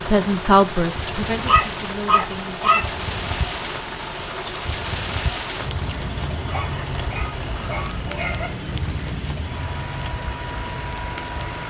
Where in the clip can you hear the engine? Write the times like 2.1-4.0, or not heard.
0.0-11.6.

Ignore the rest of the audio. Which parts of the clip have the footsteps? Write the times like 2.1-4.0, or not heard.
not heard.